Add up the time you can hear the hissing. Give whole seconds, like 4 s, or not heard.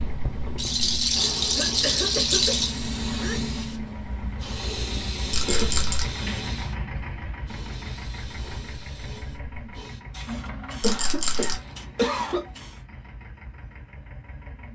13 s.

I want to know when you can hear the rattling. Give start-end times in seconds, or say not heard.
0.6-2.8, 5.3-6.0, 10.8-11.6.